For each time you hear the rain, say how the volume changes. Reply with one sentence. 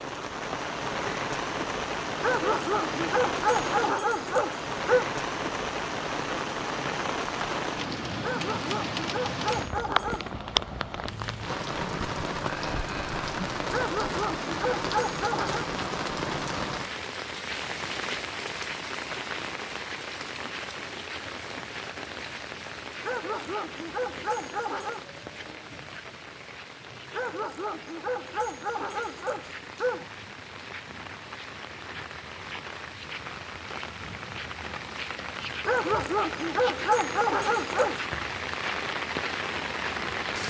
The rain can be heard from 0.0 to 40.4 s, getting quieter then louder.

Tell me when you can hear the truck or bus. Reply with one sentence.
You can't hear the truck or bus here.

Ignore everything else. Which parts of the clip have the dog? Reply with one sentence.
You can hear the dog from 2.2 to 5.0 s, from 8.2 to 10.3 s, from 13.7 to 15.7 s, from 23.0 to 25.1 s, from 27.1 to 30.1 s and from 35.6 to 38.0 s.